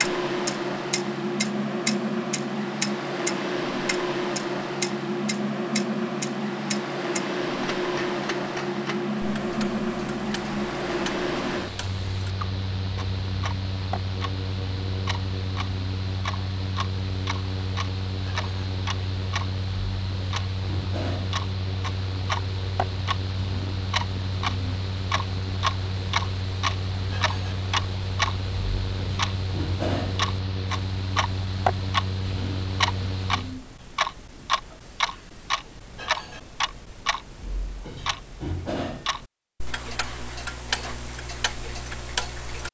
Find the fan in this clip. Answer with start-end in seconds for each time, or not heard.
0.0-33.6.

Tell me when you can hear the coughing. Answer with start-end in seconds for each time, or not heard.
not heard.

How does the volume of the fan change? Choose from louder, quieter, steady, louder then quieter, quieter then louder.
quieter.